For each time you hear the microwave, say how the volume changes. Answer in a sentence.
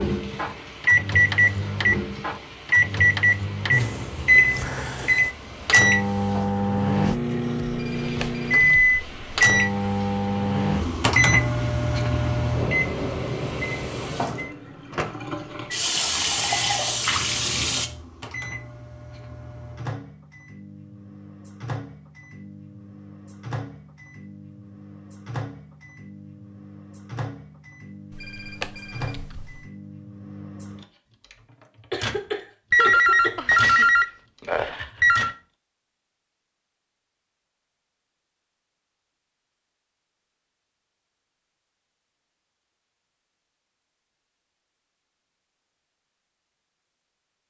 You can hear the microwave from 0.0 to 35.4 s, getting quieter.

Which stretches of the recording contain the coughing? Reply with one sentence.
You can hear the coughing from 31.9 to 33.4 s.